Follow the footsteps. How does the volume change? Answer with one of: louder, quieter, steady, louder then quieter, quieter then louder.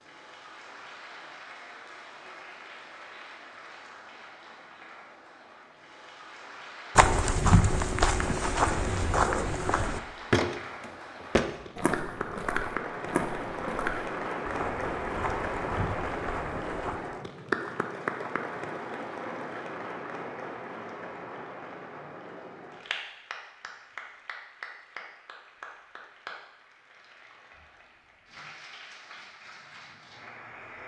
quieter.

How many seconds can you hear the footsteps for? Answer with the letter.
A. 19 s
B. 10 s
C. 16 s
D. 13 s
B.